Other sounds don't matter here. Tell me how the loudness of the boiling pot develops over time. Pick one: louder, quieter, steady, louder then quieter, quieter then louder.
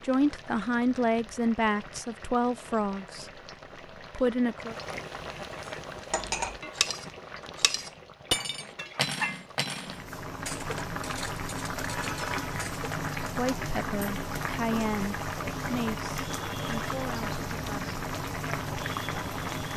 louder.